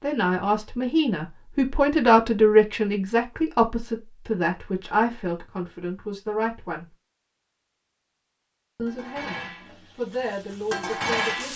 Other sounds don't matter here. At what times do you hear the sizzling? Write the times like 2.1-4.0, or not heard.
8.8-11.5.